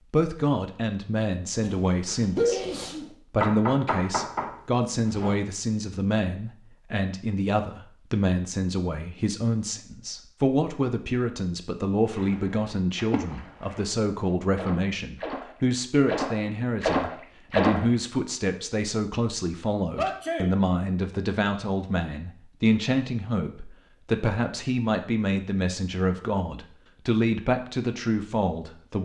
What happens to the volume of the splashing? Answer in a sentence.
The loudness of the splashing goes down, then up.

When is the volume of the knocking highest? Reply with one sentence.
The volume of the knocking peaks at 4 seconds.